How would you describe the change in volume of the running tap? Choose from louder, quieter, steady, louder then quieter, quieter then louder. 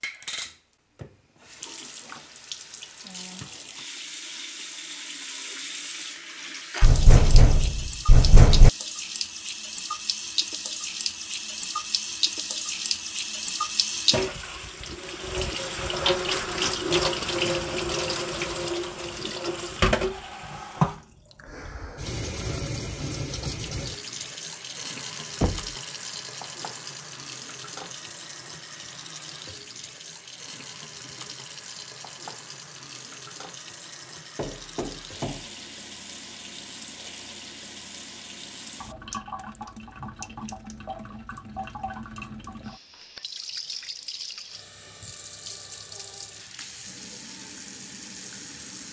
louder then quieter.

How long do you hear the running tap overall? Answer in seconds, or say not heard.
49 s.